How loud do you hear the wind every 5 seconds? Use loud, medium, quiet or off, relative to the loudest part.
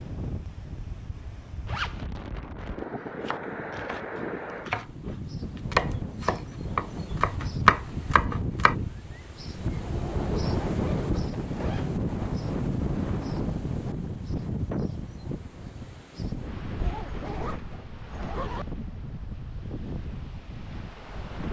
medium, medium, loud, medium, medium.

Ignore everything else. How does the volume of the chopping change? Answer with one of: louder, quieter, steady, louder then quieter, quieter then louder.
louder.